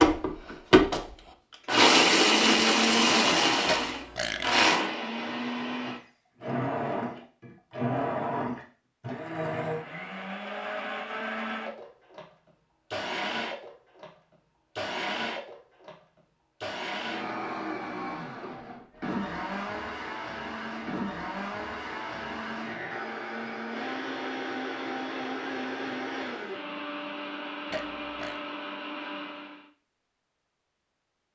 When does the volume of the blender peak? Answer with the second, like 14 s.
2 s.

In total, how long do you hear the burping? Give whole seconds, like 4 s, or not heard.
2 s.